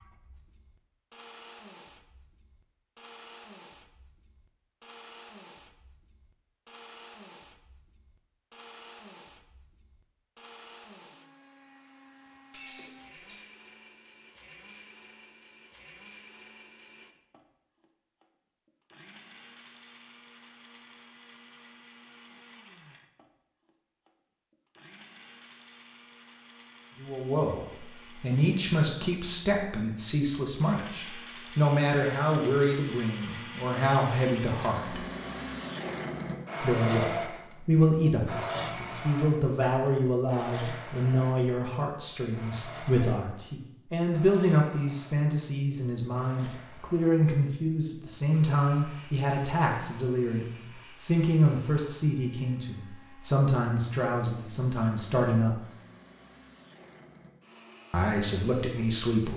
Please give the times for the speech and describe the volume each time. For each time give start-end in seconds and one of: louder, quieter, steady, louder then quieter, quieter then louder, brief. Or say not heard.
26.9-35.0 steady
36.6-55.6 steady
57.9-59.3 brief.